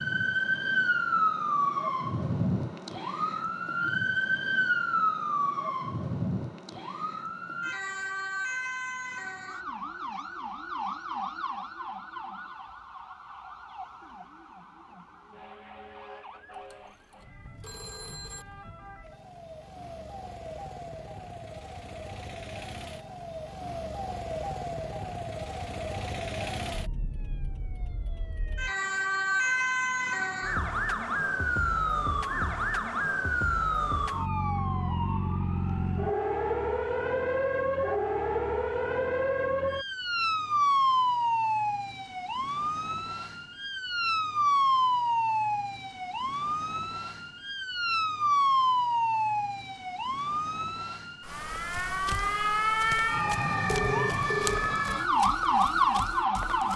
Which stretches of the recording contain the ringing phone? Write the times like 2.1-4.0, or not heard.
16.5-18.4, 53.7-54.6.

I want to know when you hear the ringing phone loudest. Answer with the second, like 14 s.
54 s.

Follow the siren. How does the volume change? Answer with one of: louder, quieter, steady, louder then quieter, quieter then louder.
quieter then louder.